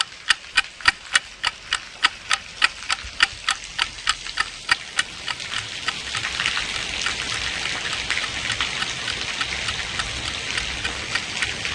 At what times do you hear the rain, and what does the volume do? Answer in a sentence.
The rain can be heard from 0.0 to 11.6 s, getting louder.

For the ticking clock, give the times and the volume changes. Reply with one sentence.
The ticking clock can be heard from 0.0 to 11.6 s, getting quieter.